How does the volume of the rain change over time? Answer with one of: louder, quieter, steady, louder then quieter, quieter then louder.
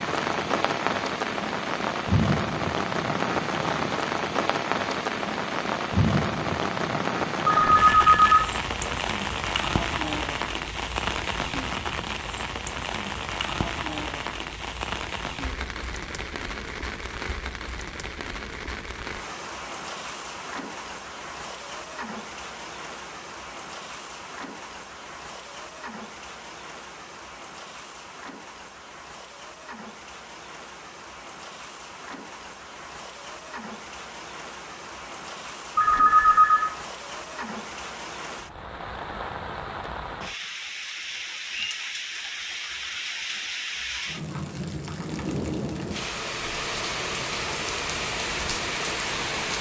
quieter then louder.